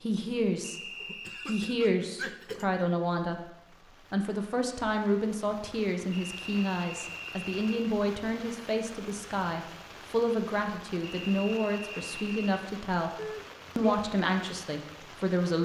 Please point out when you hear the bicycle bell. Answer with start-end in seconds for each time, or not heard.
not heard.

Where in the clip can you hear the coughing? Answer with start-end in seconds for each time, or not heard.
1.0-2.6, 13.2-14.0.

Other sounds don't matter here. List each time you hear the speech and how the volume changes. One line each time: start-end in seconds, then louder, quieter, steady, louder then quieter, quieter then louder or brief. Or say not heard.
0.0-0.8 brief
1.4-3.5 brief
4.1-15.6 steady.